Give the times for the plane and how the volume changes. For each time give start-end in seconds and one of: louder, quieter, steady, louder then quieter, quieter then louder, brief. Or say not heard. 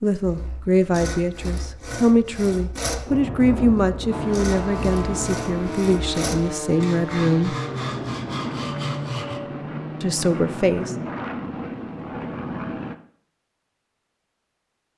4.1-12.9 steady.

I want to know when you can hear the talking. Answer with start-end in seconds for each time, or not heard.
0.0-7.5, 10.0-10.9.